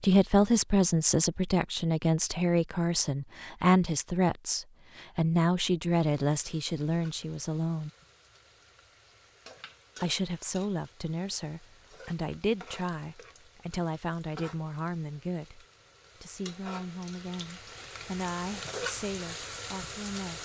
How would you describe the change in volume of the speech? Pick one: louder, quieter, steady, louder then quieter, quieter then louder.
quieter.